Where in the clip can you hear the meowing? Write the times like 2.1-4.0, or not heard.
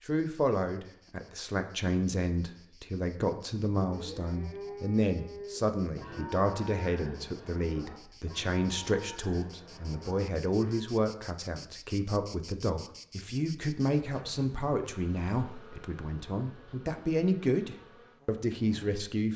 not heard.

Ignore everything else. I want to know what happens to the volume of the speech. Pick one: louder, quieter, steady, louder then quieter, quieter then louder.
steady.